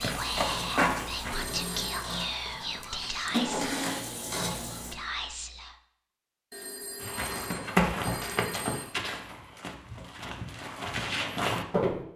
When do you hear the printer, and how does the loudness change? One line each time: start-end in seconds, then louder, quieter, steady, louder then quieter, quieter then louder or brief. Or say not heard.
0.0-5.0 louder.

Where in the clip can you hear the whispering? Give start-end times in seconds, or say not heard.
0.0-5.8.